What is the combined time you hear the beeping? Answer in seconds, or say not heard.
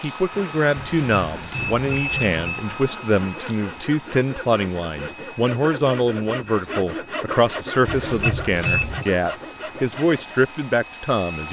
3 s.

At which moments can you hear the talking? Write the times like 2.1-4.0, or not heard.
0.0-11.4.